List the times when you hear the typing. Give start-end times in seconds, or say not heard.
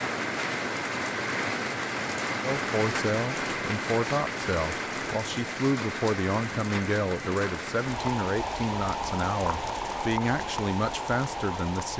not heard.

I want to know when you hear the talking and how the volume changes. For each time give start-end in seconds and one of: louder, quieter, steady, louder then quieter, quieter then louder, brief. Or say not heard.
2.4-11.9 steady.